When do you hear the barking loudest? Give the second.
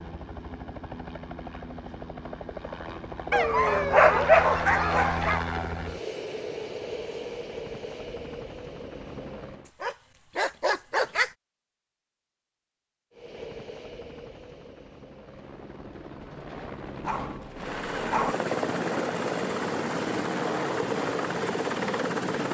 4 s.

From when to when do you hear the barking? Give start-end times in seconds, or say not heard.
3.3-5.4, 9.8-11.3, 17.0-18.4.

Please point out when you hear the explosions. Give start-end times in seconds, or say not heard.
not heard.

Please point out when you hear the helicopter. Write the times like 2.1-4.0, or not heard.
0.0-9.7, 13.1-22.4.